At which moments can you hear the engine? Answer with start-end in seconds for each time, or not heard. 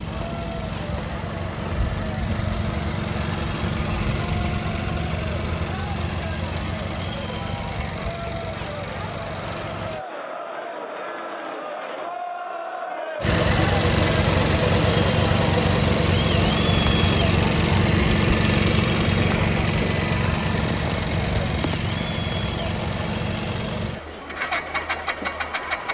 0.0-10.1, 13.2-25.8.